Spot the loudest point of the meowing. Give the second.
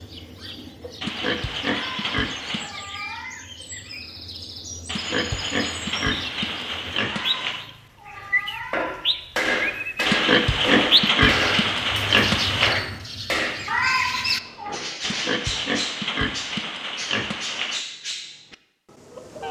14 s.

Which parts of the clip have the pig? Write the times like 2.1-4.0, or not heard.
1.0-2.7, 4.8-7.7, 10.1-12.8, 15.0-17.9.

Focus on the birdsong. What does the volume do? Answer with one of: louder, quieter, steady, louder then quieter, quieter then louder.
louder then quieter.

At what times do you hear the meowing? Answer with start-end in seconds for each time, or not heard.
1.6-3.4, 7.0-8.9, 13.7-14.8.